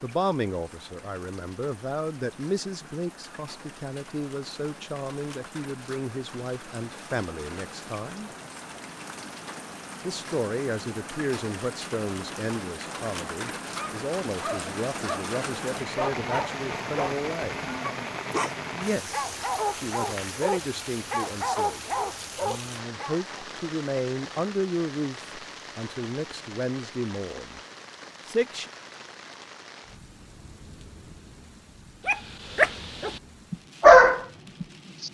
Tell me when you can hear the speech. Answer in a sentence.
You can hear the speech from 0.0 to 8.3 s, from 10.0 to 17.6 s, from 18.7 to 27.6 s and from 28.2 to 28.7 s.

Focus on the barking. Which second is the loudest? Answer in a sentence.
The loudest moment of the barking is at 34 seconds.